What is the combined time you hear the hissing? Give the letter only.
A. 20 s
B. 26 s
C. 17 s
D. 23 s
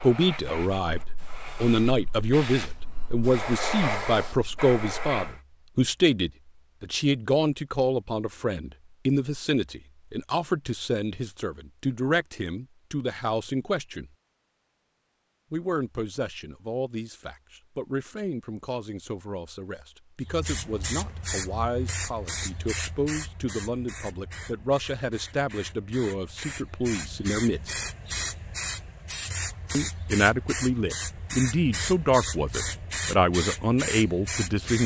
A.